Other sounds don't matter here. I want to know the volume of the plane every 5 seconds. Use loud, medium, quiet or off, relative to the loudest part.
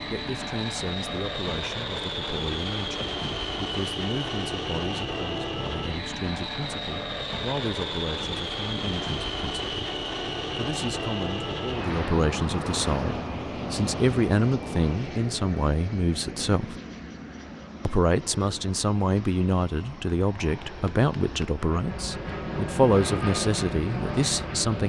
loud, loud, loud, medium, loud.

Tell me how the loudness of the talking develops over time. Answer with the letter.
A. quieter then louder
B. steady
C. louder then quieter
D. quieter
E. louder
E.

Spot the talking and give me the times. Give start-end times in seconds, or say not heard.
0.1-16.8, 17.9-24.8.